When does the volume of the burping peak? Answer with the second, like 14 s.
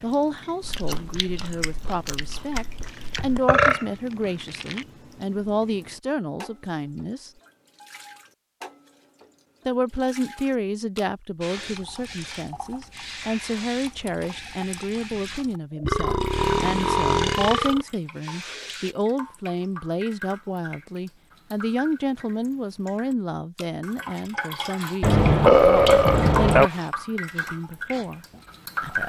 26 s.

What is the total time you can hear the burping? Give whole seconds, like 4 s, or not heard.
6 s.